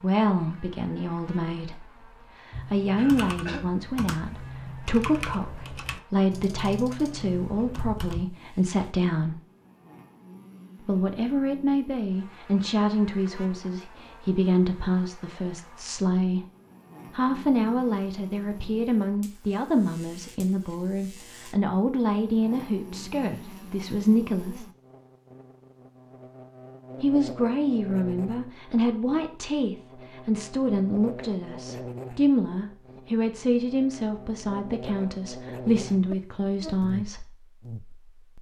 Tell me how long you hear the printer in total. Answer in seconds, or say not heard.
not heard.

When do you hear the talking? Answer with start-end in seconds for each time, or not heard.
0.0-1.9, 2.6-9.4, 10.8-16.4, 17.1-24.6, 27.0-37.2.